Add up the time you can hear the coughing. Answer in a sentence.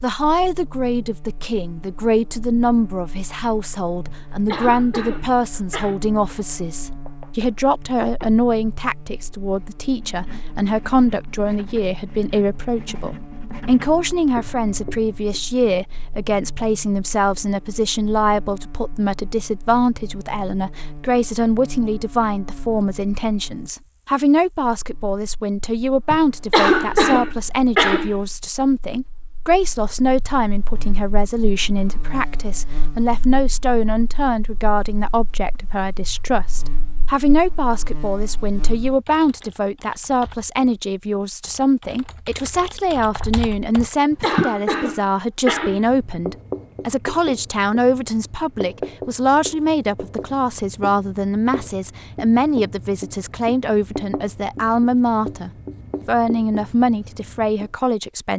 The coughing can be heard for 6 seconds in total.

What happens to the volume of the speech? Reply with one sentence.
The volume of the speech stays about the same.